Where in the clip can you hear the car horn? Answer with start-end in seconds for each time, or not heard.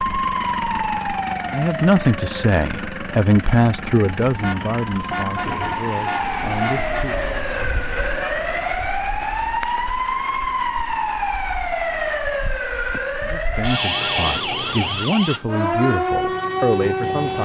4.4-7.1, 13.9-14.9.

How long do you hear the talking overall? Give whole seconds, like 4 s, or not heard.
10 s.